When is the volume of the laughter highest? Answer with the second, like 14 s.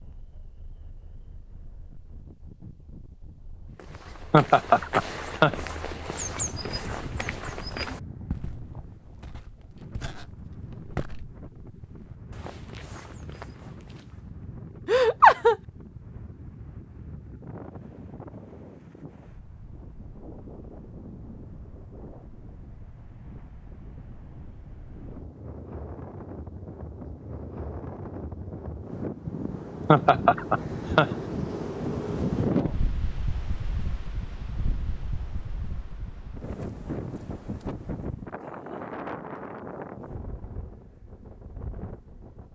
15 s.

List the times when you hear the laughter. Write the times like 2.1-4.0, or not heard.
4.3-5.5, 14.8-15.6, 29.9-31.1.